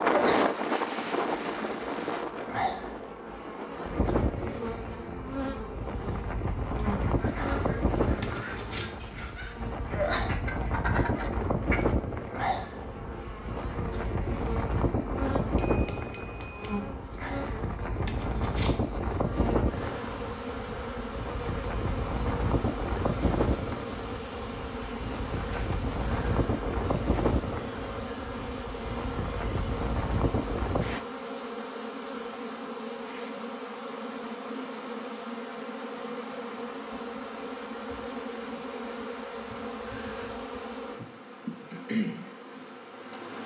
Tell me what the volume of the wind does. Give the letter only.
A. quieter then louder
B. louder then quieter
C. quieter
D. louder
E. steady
E.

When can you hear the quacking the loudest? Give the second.
11 s.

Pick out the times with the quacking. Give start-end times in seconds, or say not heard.
6.8-11.9.